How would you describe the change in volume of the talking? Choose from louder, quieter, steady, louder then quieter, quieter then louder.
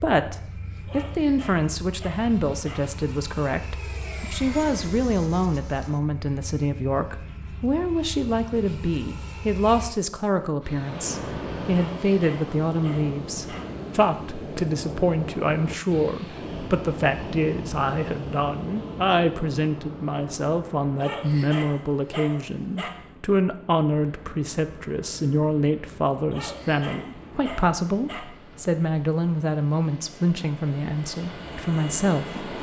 steady.